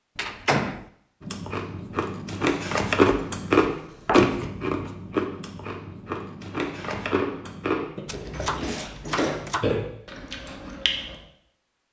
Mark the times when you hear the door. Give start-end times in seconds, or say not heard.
0.1-0.8, 8.1-9.5.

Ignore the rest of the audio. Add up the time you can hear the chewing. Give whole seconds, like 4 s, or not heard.
10 s.